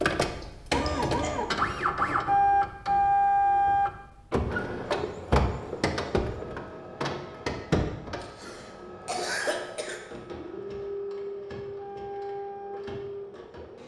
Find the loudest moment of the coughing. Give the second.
9 s.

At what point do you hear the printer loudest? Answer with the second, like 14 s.
3 s.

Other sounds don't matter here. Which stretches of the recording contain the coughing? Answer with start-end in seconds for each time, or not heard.
0.4-1.4, 8.2-10.0.